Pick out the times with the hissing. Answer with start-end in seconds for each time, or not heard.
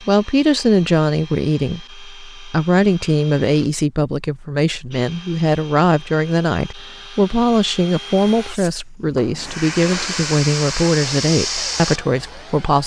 8.4-12.6.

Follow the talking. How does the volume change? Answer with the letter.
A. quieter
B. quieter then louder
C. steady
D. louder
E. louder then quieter
C.